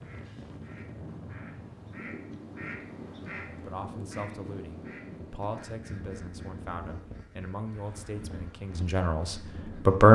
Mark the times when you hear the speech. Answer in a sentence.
You can hear the speech from 3.6 to 10.0 s.